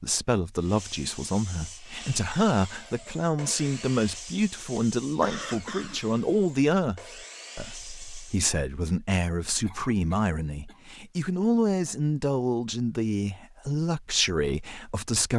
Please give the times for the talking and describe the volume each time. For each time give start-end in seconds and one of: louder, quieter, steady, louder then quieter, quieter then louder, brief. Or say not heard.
0.0-15.3 steady.